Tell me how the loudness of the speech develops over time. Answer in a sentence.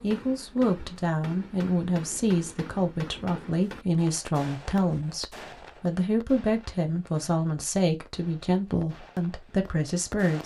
The volume of the speech stays about the same.